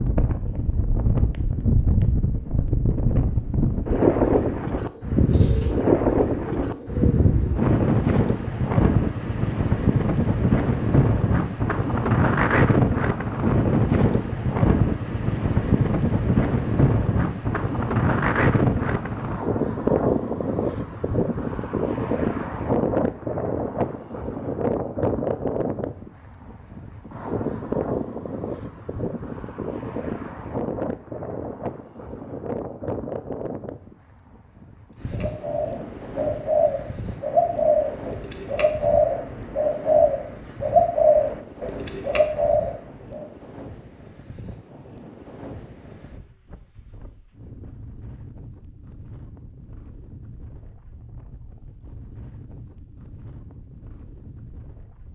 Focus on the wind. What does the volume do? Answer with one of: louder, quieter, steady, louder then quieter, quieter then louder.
quieter.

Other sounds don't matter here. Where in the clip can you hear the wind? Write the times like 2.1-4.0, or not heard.
0.0-55.1.